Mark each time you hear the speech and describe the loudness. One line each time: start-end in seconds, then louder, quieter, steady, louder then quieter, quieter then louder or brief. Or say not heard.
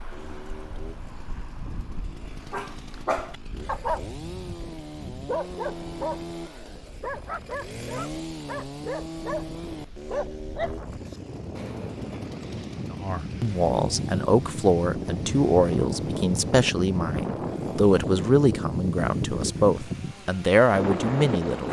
12.9-21.6 steady.